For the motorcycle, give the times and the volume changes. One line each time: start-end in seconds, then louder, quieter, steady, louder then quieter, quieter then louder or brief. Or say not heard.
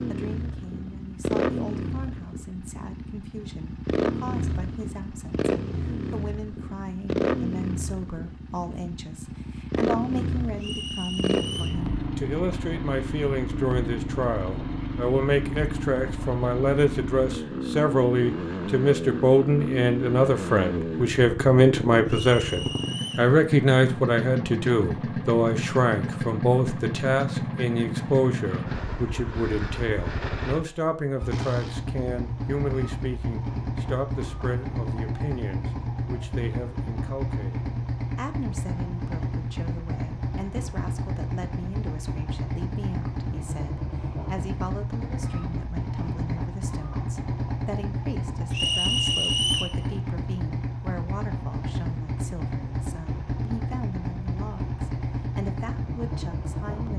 0.0-56.9 steady.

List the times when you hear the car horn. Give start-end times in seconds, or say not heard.
not heard.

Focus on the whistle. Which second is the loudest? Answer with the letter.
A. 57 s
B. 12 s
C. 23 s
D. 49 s
D.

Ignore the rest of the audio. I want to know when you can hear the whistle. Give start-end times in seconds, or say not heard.
10.6-11.8, 22.1-23.3, 48.5-49.8.